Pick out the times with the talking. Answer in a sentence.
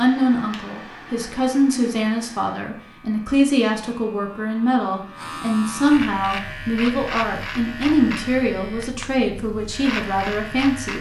The talking can be heard from 0.0 to 10.9 s.